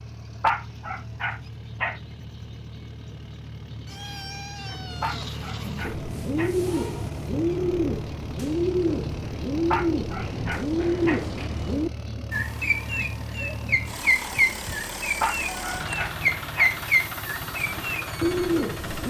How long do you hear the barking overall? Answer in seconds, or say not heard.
6 s.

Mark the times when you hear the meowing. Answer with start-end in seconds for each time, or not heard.
3.9-6.0, 15.4-16.1.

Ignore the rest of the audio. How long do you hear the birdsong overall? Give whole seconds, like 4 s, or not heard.
13 s.